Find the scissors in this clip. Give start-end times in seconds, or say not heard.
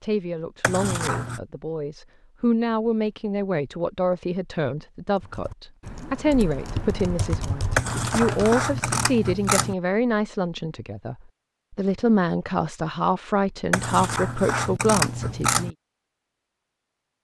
0.6-1.4, 7.8-9.8, 13.7-15.7.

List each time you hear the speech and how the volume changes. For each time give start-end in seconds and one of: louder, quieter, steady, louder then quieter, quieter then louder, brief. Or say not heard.
0.0-15.7 steady.